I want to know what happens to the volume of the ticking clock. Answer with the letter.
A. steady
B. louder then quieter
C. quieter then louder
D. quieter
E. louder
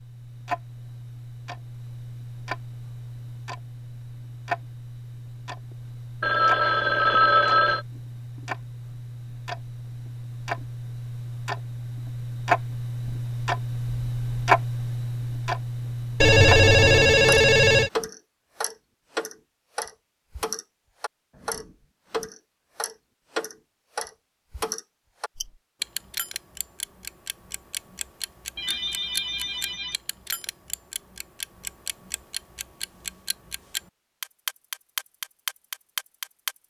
B.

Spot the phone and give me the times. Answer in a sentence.
You can hear the phone from 6.2 to 7.8 s, from 16.2 to 17.9 s and from 28.6 to 29.9 s.